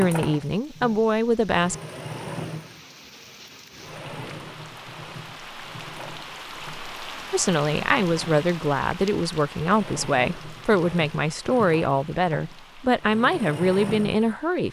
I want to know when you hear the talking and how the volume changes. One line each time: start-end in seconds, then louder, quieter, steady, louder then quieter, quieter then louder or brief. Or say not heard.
0.0-1.8 brief
7.3-14.6 steady.